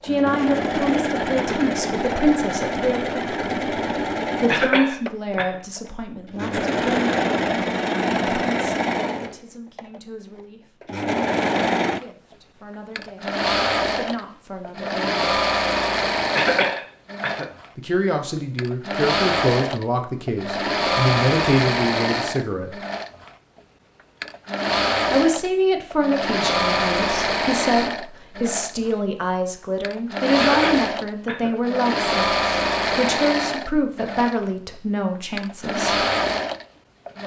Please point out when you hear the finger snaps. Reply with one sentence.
The finger snaps can't be heard in this clip.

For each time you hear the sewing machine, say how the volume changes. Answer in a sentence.
You can hear the sewing machine from 0.0 to 37.2 s, at a steady volume.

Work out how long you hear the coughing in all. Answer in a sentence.
You can hear the coughing for 3 seconds altogether.